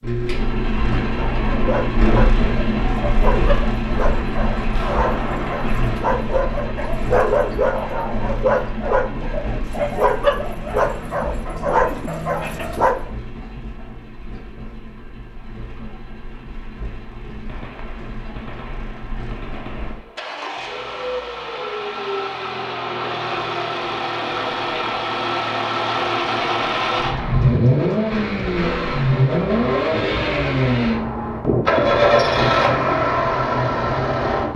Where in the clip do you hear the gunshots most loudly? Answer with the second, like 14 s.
5 s.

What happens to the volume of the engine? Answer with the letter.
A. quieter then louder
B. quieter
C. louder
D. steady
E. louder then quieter
A.